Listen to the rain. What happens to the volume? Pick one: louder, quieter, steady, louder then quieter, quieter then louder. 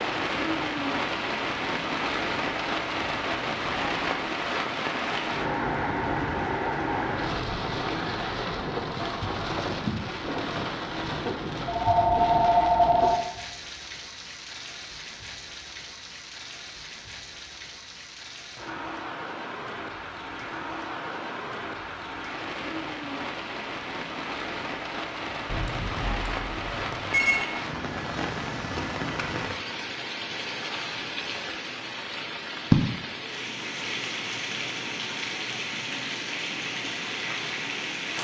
quieter then louder.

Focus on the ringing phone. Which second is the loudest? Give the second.
13 s.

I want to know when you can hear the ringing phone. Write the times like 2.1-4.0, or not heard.
11.7-13.2, 25.4-27.4.